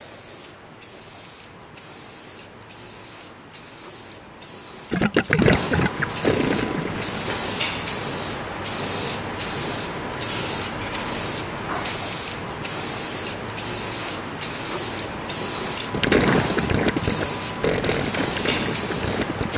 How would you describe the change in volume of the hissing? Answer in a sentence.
The loudness of the hissing goes up.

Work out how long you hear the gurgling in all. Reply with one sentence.
The gurgling can be heard for 6 seconds in total.